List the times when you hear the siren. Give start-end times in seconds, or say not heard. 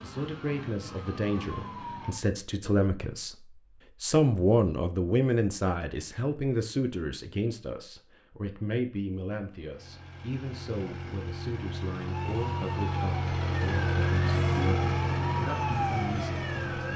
0.0-2.2, 12.1-16.9.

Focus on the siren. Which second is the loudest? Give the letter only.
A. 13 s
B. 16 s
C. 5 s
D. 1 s
B.